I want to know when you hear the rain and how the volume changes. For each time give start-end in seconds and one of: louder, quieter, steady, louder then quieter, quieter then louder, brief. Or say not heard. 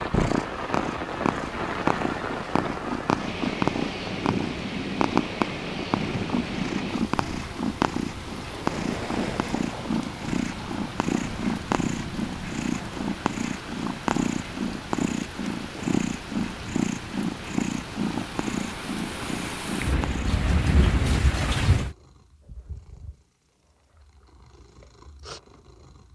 0.0-21.9 quieter then louder.